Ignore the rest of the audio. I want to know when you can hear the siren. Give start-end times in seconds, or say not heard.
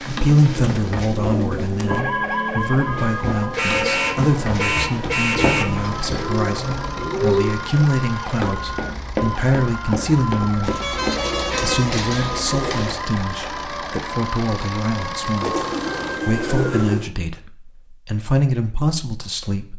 1.9-16.9.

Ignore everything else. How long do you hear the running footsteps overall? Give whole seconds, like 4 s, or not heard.
9 s.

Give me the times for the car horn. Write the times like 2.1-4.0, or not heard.
3.5-5.7, 10.6-11.9.